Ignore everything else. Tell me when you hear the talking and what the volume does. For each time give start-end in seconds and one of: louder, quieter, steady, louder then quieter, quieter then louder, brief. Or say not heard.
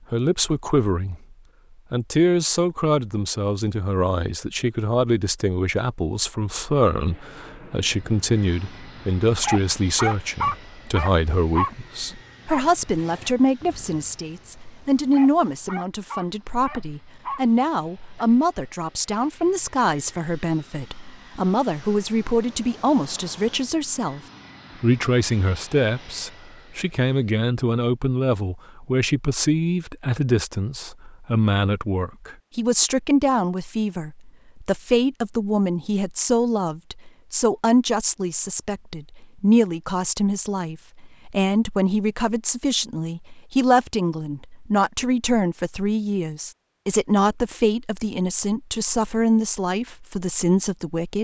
0.1-1.1 brief
1.9-24.2 steady
24.8-51.1 steady.